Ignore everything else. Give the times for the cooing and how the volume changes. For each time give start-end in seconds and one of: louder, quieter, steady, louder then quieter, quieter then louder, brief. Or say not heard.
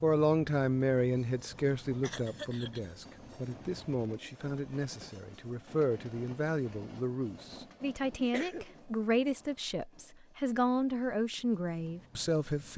not heard.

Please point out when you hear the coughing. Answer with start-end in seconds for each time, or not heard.
2.0-2.9, 8.2-8.8.